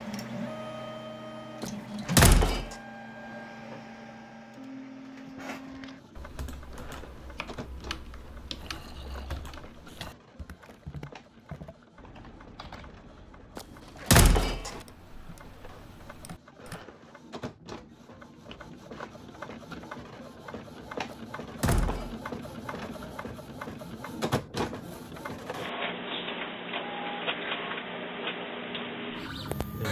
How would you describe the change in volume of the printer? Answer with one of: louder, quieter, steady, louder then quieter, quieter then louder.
quieter then louder.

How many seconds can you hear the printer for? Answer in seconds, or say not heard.
30 s.